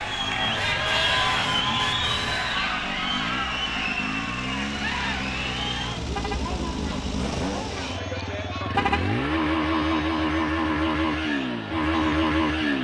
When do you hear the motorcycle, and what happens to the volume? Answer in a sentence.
The motorcycle can be heard from 0.0 to 12.7 s, getting louder.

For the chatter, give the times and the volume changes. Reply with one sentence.
The chatter can be heard from 0.0 to 12.7 s, getting quieter.